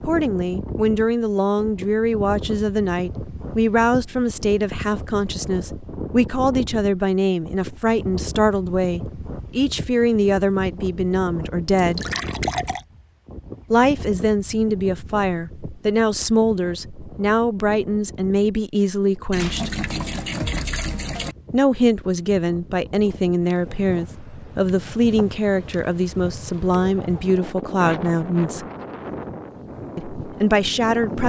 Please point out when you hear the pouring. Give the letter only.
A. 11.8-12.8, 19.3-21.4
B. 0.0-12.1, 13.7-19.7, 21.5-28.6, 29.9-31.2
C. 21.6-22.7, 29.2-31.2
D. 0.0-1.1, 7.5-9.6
A.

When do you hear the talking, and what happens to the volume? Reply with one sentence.
The talking can be heard from 0.0 to 12.1 s, at a steady volume; from 13.7 to 19.7 s, at a steady volume; from 21.5 to 28.6 s, at a steady volume; and briefly from 29.9 to 31.2 s.